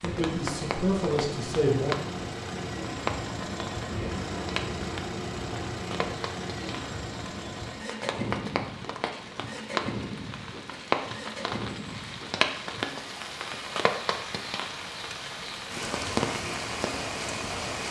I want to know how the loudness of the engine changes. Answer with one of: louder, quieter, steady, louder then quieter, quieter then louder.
quieter.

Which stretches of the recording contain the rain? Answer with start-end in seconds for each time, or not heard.
0.0-17.8.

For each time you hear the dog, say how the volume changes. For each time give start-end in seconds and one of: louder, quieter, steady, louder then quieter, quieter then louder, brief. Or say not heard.
not heard.